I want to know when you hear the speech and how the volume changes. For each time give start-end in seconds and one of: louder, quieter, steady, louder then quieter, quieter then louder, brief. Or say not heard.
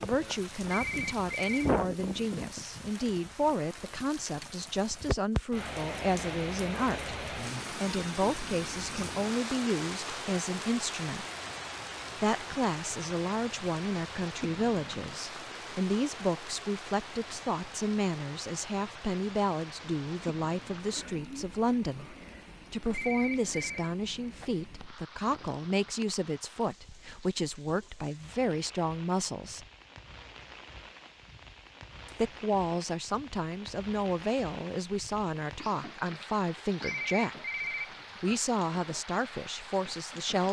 0.0-11.2 steady
12.2-29.6 steady
32.0-37.4 steady
38.2-40.4 brief.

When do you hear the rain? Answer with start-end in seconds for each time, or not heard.
0.0-40.4.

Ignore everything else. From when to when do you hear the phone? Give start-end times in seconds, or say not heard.
0.7-1.7, 22.9-23.9, 36.8-38.3.